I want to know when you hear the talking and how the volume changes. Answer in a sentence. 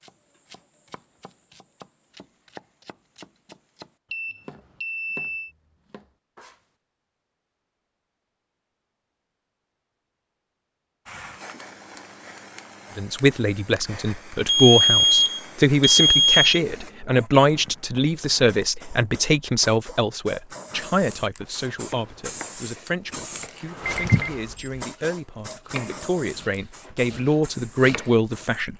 You can hear the talking from 12.9 to 28.7 s, getting quieter then louder.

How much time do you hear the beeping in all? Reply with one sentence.
You can hear the beeping for 4 seconds altogether.